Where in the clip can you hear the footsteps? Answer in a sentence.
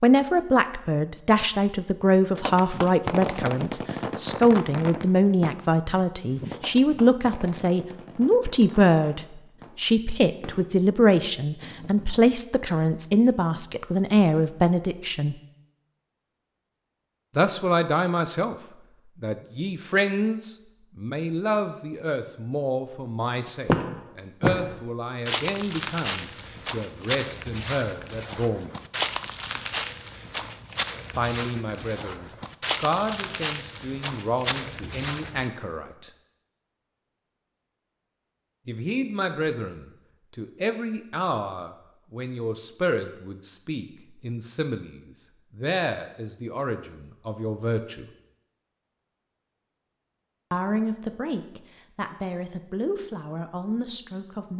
You can hear the footsteps from 23.4 to 35.5 s.